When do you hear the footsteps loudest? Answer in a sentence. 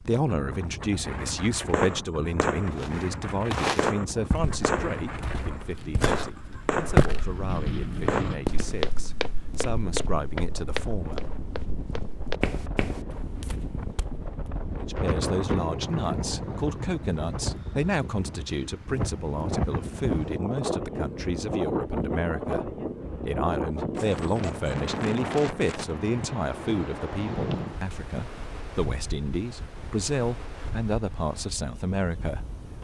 The volume of the footsteps peaks at 7 seconds.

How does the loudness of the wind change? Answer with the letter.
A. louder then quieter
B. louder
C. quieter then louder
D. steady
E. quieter
A.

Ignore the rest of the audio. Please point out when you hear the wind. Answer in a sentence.
The wind can be heard from 0.0 to 32.7 s.